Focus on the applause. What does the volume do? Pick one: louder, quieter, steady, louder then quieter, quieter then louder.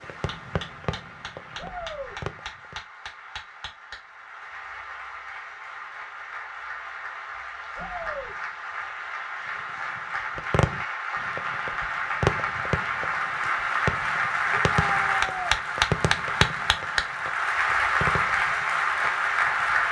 louder.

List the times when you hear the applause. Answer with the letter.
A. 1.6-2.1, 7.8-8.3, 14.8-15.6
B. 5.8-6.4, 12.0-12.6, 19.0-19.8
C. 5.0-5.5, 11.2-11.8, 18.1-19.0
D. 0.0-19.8
D.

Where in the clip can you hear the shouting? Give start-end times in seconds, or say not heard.
1.6-2.1, 7.8-8.3, 14.8-15.6.